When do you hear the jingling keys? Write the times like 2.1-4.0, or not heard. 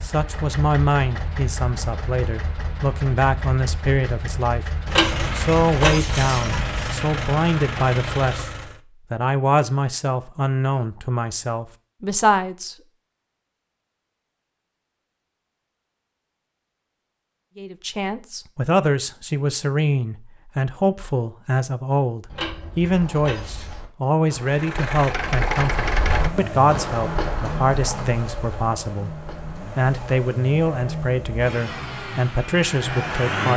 4.8-6.9, 22.3-23.8.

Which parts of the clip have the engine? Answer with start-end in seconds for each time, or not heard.
0.0-8.8, 24.4-33.5.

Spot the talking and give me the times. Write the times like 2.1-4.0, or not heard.
0.0-4.7, 5.3-8.5, 9.1-12.8, 17.6-33.5.